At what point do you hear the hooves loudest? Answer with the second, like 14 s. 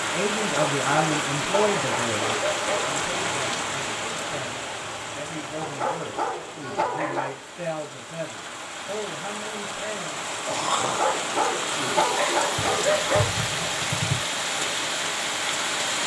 14 s.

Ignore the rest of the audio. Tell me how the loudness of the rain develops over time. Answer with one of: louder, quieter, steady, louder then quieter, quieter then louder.
quieter then louder.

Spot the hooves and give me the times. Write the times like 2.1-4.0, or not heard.
12.6-14.2.